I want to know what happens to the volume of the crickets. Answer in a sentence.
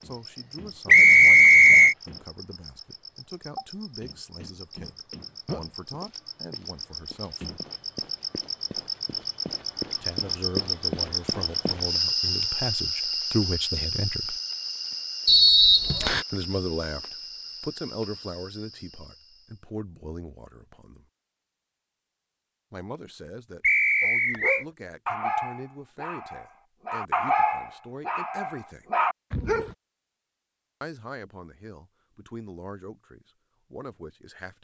The volume of the crickets goes up, then down.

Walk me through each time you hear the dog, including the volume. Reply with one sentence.
You can hear the dog from 24.0 to 29.8 s, getting quieter then louder.